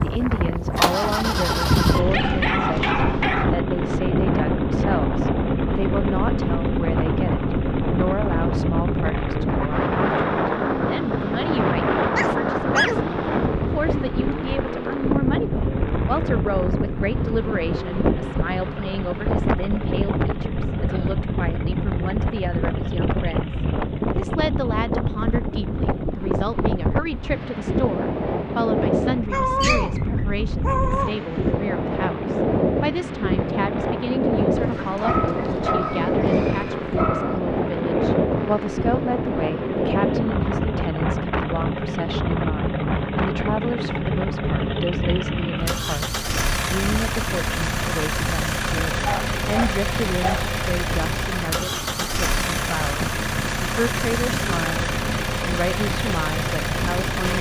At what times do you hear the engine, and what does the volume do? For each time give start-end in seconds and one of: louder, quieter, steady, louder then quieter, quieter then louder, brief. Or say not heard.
0.0-57.3 quieter then louder.